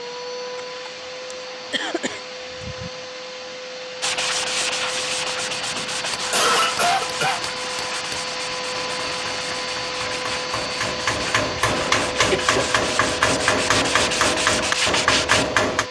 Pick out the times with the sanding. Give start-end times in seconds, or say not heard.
4.0-15.5.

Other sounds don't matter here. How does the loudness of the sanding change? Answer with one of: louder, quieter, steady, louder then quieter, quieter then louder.
quieter then louder.